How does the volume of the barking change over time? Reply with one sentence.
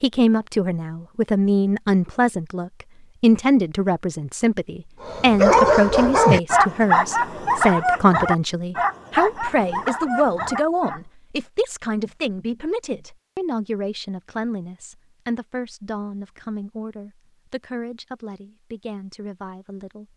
The loudness of the barking goes down.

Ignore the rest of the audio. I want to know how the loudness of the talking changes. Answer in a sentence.
The volume of the talking goes down.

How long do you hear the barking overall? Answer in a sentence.
You can hear the barking for 6 seconds altogether.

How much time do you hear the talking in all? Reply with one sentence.
The talking can be heard for 20 seconds in total.